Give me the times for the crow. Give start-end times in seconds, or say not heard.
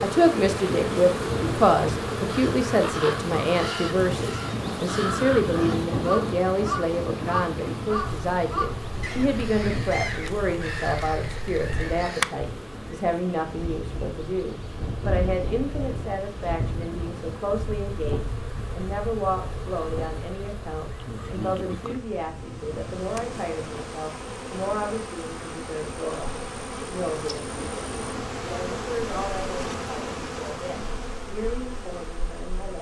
2.3-12.3.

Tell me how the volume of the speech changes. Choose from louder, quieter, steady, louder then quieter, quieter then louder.
quieter.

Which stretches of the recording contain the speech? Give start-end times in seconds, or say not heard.
0.0-32.7.